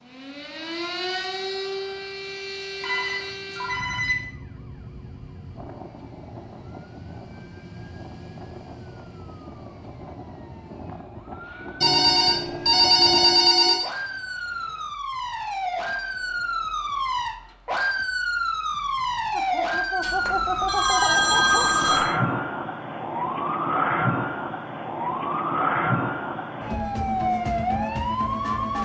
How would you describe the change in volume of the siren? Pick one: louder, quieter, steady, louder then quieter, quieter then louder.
quieter then louder.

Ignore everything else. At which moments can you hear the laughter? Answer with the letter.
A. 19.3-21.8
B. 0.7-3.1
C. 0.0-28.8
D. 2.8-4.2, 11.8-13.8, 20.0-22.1
A.